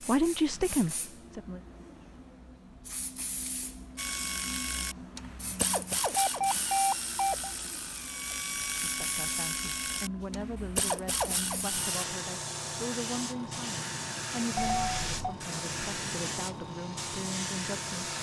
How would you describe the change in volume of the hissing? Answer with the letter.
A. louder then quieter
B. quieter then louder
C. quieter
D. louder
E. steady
D.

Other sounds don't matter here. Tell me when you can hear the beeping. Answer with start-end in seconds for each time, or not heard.
6.2-7.5, 14.6-15.2.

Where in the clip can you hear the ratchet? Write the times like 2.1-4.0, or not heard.
4.0-12.1.